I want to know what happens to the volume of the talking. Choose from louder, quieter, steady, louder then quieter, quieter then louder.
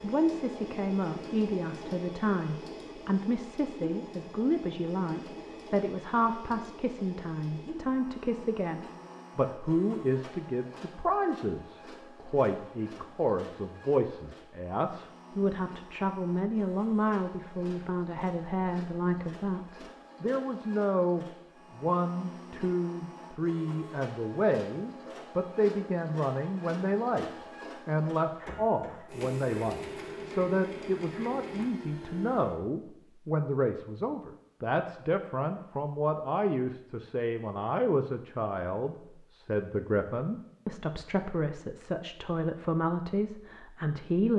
steady.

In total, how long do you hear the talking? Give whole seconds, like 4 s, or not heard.
44 s.